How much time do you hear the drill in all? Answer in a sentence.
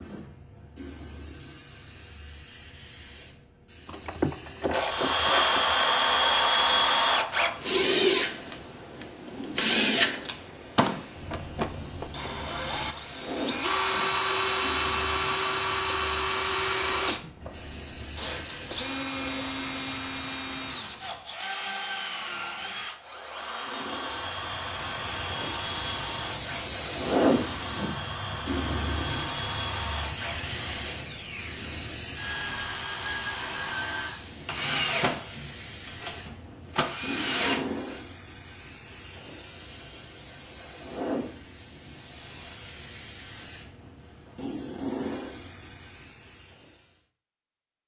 The drill can be heard for 33 seconds in total.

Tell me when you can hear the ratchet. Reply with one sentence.
The ratchet can be heard from 3.9 to 5.8 s.